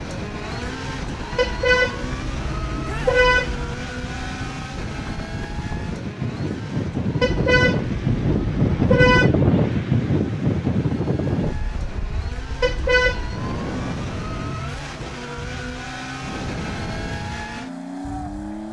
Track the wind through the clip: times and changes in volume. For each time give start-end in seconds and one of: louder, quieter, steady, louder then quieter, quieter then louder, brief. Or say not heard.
0.0-18.6 louder then quieter.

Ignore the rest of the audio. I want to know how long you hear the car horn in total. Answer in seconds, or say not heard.
5 s.